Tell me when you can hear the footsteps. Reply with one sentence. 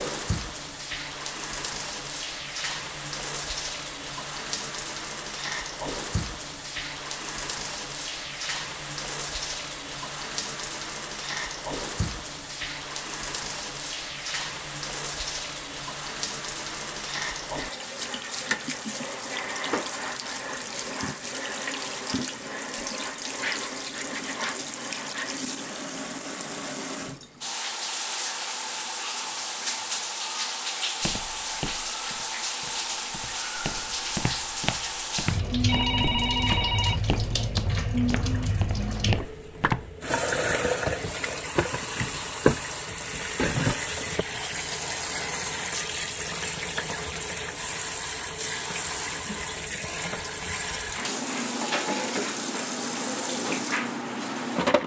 You can hear the footsteps from 31.0 to 39.9 s.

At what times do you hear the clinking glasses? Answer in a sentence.
The clinking glasses can't be heard in this clip.